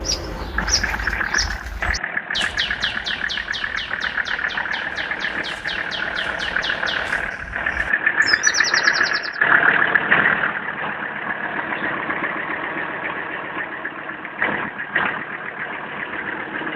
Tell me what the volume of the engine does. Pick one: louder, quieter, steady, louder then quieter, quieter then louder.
louder then quieter.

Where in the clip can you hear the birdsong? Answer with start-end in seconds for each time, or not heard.
0.0-9.4.